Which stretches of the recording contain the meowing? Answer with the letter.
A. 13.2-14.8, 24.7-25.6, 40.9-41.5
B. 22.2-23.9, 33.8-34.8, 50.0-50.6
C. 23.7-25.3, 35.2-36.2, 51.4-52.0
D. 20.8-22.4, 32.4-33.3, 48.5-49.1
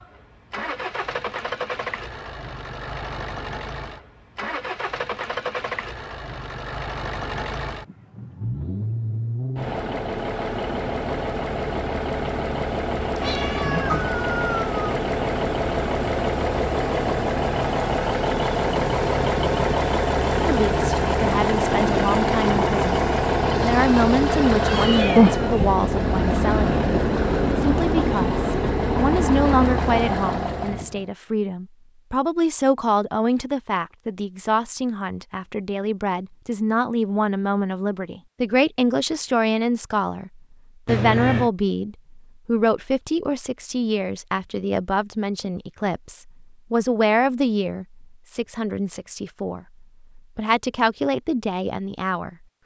A.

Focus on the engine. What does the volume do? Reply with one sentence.
The loudness of the engine goes up.